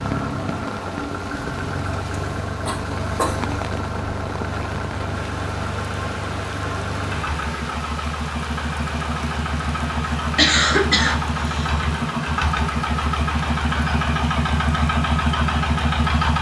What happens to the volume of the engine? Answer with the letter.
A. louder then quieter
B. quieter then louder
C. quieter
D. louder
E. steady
D.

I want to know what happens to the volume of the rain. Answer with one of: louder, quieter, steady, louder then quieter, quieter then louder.
steady.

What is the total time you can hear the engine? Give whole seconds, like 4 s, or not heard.
16 s.